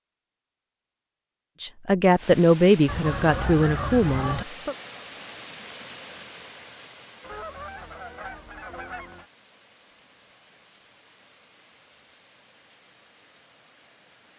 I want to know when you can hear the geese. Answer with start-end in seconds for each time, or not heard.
2.9-4.5, 7.2-9.2.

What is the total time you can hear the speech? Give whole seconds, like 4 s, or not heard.
3 s.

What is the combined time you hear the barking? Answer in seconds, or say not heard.
not heard.